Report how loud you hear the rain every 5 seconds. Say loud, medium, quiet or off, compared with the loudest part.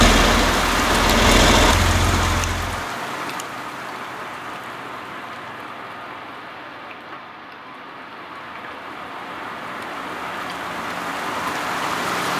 loud, medium, loud.